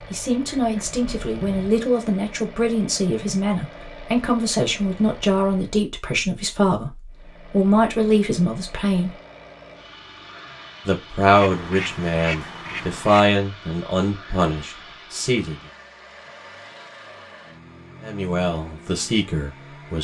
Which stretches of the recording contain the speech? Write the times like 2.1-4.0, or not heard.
0.0-9.2, 10.8-15.6, 18.0-19.9.